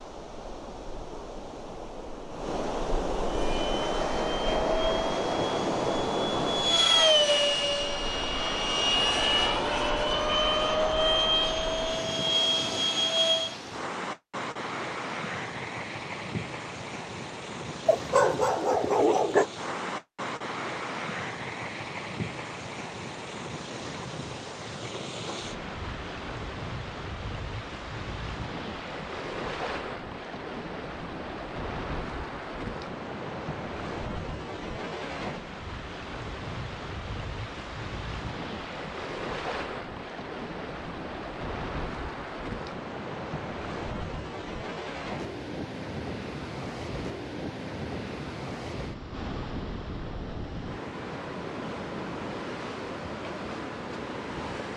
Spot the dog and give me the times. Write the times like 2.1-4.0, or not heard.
17.9-19.4.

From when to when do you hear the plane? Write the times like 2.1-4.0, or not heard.
3.2-13.6.